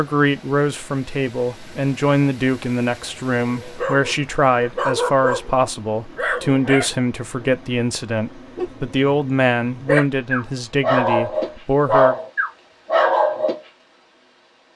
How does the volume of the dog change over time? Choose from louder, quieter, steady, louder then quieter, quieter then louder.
quieter then louder.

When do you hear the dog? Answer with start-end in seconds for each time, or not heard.
3.5-13.6.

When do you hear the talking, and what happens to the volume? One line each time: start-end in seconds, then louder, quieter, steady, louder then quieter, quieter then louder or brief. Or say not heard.
0.0-12.2 steady.